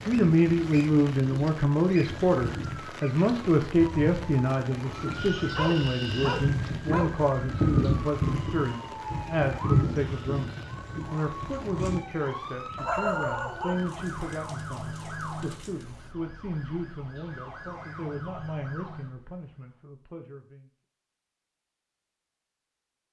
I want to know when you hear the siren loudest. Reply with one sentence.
The volume of the siren peaks at 8 seconds.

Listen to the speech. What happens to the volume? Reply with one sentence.
The volume of the speech goes down.